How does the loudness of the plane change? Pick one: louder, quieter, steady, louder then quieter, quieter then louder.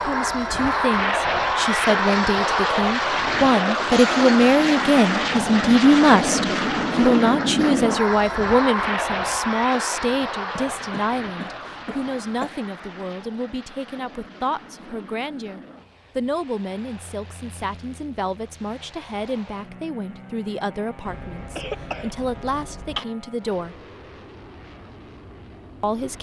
quieter.